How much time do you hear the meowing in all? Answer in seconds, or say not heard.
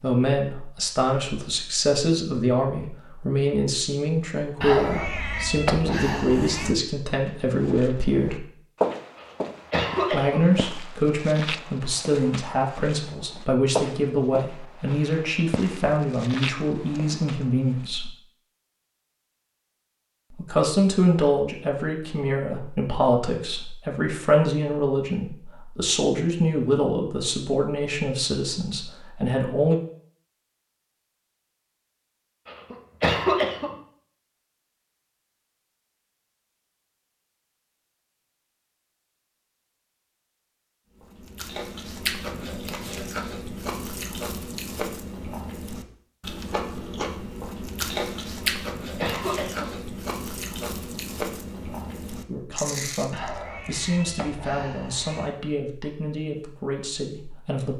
4 s.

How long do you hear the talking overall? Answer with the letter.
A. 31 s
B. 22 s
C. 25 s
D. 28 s
A.